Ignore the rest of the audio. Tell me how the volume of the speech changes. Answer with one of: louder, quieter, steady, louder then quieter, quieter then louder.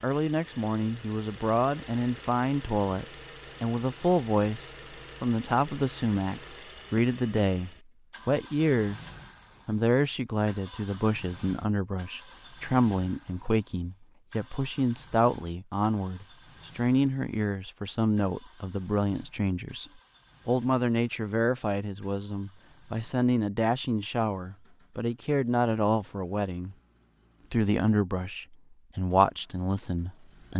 steady.